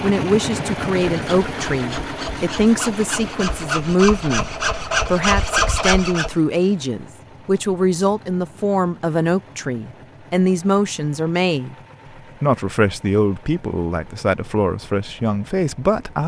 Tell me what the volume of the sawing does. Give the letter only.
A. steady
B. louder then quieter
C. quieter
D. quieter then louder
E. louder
E.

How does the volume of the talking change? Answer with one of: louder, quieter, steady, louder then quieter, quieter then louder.
steady.